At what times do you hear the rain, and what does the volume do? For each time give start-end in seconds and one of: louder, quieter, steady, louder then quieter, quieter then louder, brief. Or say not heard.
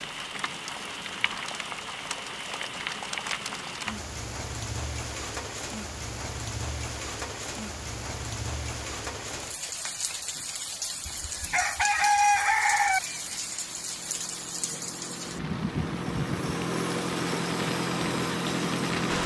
0.0-19.2 steady.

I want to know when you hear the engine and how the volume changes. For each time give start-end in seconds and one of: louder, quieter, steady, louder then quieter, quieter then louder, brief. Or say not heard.
12.8-19.2 louder.